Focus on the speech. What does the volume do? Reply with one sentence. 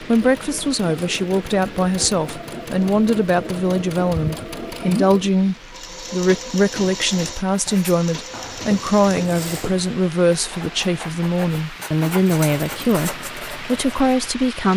The volume of the speech stays about the same.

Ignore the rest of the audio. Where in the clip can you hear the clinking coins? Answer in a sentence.
The clinking coins can't be heard in this clip.